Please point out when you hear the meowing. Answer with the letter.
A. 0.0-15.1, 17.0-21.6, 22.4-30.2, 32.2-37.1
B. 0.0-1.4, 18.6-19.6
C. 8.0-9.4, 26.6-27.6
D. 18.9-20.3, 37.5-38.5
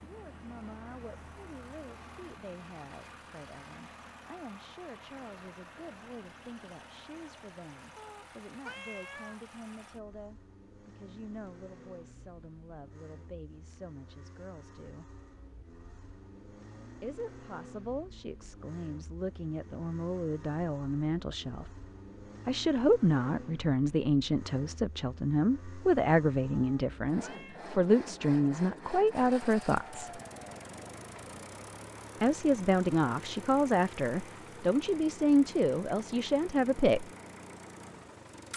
C.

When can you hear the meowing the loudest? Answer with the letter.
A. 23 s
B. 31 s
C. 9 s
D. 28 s
C.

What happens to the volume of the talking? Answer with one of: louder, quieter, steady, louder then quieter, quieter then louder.
louder.